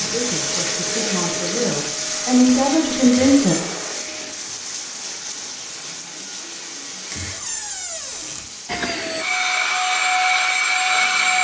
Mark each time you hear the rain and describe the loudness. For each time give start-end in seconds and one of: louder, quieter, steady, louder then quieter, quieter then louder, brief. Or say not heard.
0.0-11.4 quieter.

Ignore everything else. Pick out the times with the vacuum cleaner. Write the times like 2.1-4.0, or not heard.
0.0-4.3, 8.7-11.4.